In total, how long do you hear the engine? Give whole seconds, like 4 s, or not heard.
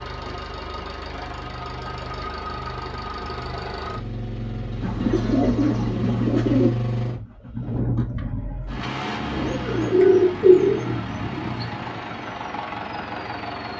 14 s.